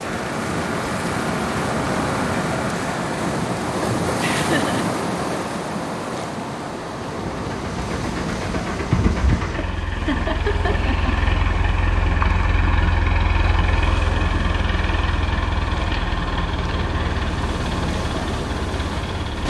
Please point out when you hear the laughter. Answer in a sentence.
The laughter can be heard from 4.2 to 4.8 s and from 10.1 to 11.1 s.